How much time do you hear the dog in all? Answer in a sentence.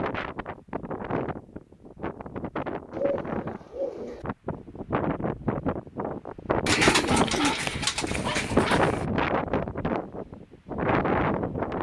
You can hear the dog for 2 seconds altogether.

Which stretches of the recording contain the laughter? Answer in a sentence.
The laughter can't be heard in this clip.